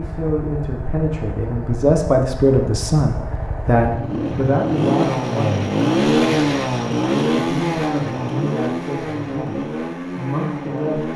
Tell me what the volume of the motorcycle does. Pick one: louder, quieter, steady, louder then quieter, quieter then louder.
louder then quieter.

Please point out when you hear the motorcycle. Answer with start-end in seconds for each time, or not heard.
0.0-11.1.